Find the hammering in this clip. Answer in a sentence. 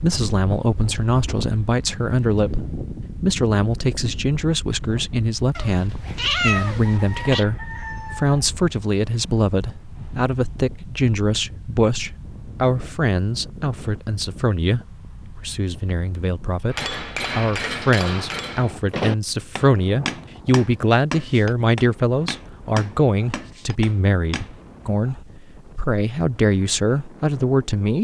The hammering can be heard from 16.7 to 24.5 s.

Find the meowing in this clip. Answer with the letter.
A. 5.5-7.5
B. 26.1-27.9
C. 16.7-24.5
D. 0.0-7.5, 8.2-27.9
A.